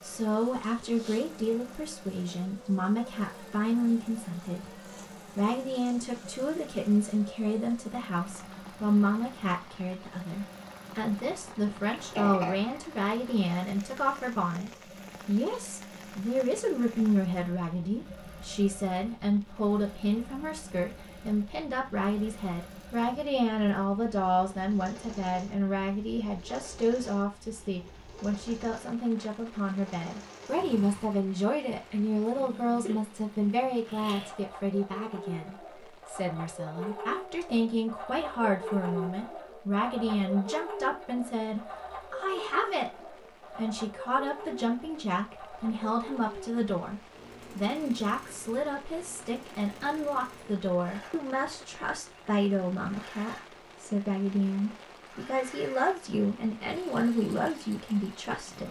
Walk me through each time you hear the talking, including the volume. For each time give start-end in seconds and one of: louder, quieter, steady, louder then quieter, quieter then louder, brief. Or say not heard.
0.0-58.6 steady.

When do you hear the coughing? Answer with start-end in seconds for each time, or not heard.
11.2-12.8.